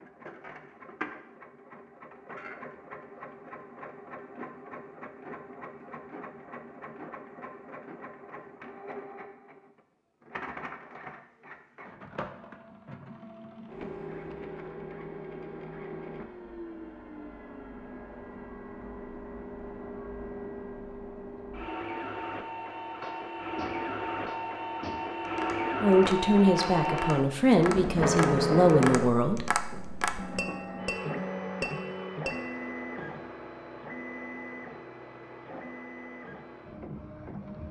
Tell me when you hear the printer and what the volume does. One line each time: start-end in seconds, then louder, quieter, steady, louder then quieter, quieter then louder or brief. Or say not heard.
0.0-37.6 louder then quieter.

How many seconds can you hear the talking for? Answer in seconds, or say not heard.
4 s.